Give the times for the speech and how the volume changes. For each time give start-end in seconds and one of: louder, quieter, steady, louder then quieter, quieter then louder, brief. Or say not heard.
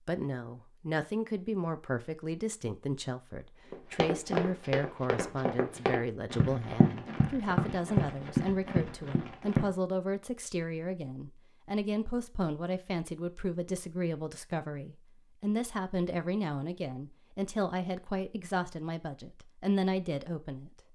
0.1-20.7 steady.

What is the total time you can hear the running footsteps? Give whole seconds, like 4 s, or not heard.
6 s.